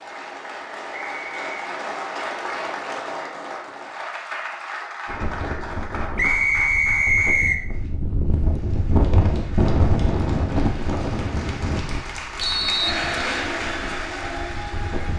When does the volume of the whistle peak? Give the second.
7 s.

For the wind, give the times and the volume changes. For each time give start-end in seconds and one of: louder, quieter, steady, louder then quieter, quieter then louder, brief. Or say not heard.
5.0-15.1 louder then quieter.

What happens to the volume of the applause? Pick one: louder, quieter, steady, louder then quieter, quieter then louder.
quieter then louder.